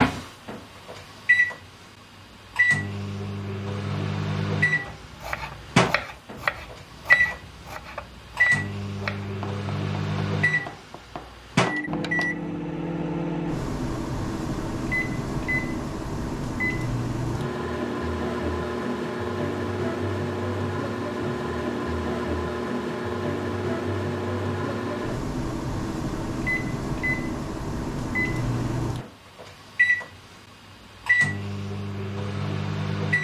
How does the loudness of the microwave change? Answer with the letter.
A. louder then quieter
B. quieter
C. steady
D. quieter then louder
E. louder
C.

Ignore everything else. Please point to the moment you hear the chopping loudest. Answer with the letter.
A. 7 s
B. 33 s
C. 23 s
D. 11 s
A.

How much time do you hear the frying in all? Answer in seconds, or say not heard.
not heard.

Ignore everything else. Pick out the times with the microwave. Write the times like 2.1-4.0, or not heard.
0.0-33.1.